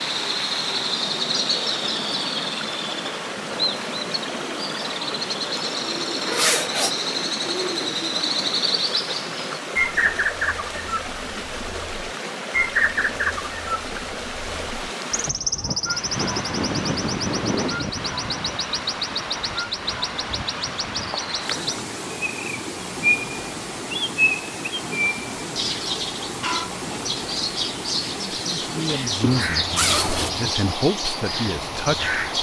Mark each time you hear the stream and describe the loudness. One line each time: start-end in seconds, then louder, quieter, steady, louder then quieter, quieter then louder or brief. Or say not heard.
0.0-32.3 steady.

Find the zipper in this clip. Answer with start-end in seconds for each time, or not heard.
6.2-7.0, 29.2-30.6.